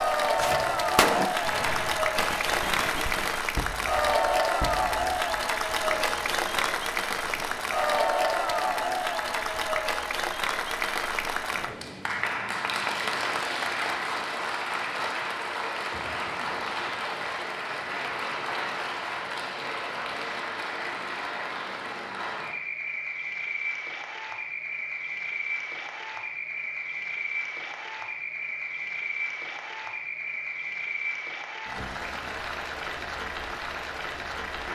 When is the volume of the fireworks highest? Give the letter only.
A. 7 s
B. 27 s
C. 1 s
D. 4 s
C.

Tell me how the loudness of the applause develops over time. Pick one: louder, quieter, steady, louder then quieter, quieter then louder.
quieter.